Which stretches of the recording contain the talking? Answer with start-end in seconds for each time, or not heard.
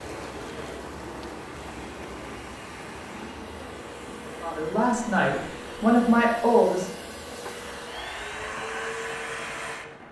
4.4-6.8.